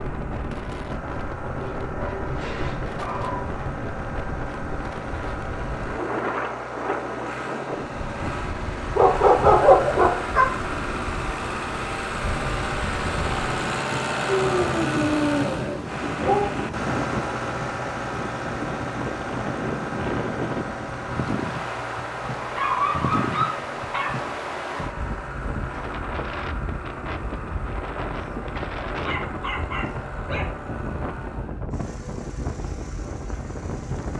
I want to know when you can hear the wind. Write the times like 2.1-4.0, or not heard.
0.0-34.1.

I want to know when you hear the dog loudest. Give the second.
10 s.